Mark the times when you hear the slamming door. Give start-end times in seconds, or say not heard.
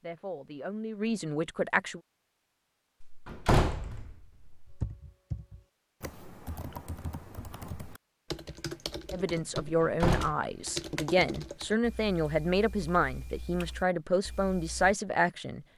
3.0-4.8, 9.7-10.3.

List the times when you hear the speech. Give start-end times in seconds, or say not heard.
0.0-2.0, 9.1-15.7.